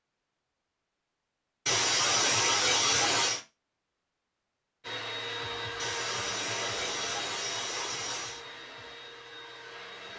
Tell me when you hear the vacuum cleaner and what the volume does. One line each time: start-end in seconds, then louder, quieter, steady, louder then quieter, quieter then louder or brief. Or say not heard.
4.8-10.1 quieter.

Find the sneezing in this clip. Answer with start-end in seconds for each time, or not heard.
1.6-3.4, 5.8-8.4.